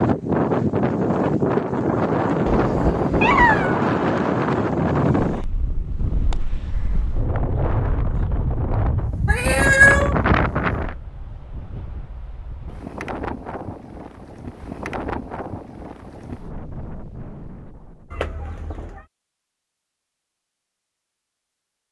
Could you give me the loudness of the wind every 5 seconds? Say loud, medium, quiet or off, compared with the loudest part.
loud, medium, medium, quiet, off.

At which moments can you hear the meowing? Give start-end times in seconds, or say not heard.
2.5-3.8, 9.2-10.2, 18.1-19.0.